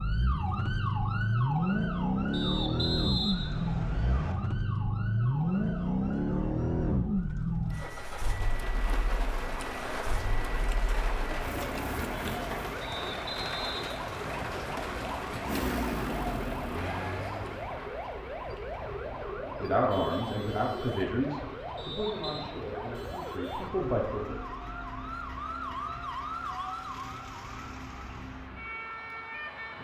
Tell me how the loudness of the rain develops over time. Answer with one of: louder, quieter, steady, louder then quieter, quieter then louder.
quieter.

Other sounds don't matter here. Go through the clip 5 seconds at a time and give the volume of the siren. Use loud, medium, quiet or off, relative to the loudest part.
loud, medium, loud, loud, loud, loud.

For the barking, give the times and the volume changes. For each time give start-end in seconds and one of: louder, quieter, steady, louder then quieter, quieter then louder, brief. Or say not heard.
not heard.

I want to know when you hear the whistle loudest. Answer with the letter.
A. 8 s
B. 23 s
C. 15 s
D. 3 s
D.